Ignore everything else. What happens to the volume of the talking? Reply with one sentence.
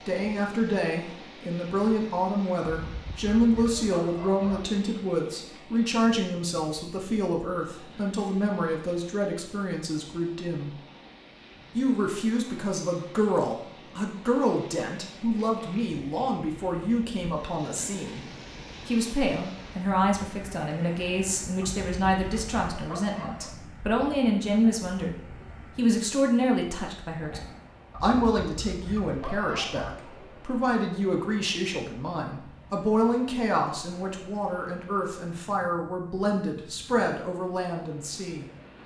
The volume of the talking stays about the same.